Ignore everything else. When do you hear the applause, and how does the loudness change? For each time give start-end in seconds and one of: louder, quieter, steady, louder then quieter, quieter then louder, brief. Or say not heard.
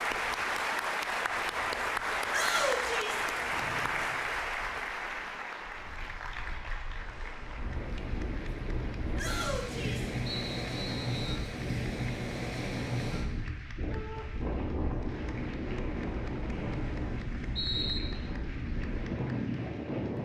0.0-20.1 quieter.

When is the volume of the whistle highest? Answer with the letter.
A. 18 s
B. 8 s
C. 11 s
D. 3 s
A.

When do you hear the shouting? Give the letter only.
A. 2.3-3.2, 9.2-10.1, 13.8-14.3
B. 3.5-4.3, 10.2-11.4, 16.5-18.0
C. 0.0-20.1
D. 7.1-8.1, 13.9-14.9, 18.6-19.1
A.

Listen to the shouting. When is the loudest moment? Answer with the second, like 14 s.
3 s.